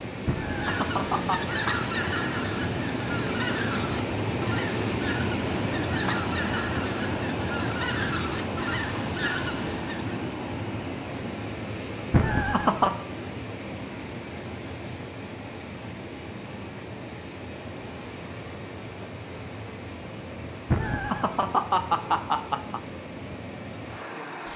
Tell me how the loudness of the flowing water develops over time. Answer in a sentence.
The volume of the flowing water goes down.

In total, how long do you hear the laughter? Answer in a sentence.
The laughter can be heard for 4 seconds in total.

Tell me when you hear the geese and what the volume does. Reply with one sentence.
You can hear the geese from 0.4 to 10.2 s, at a steady volume.